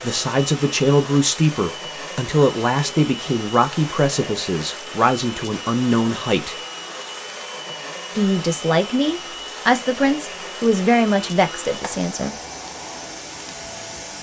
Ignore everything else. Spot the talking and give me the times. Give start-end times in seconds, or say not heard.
0.0-6.5, 8.2-12.3.